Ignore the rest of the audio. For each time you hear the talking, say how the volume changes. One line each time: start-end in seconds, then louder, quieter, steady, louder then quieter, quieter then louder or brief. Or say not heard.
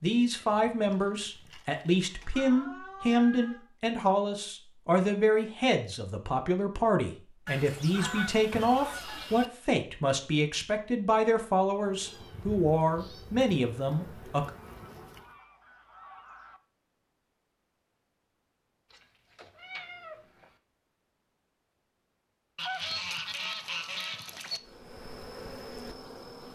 0.0-14.5 steady.